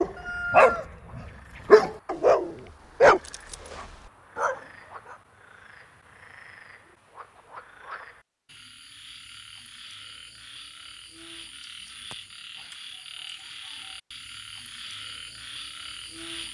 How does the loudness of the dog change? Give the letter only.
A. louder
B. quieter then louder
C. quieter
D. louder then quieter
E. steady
C.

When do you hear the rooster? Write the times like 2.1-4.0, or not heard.
0.1-1.6.